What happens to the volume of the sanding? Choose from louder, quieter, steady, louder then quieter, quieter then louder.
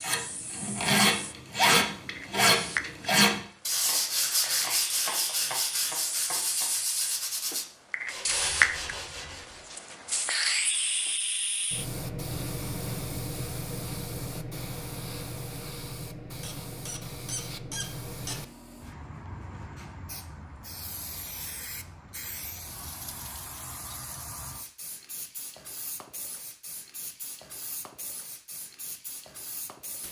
quieter.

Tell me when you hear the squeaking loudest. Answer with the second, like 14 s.
18 s.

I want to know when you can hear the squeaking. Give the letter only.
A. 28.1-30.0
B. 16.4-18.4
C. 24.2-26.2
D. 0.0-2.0
B.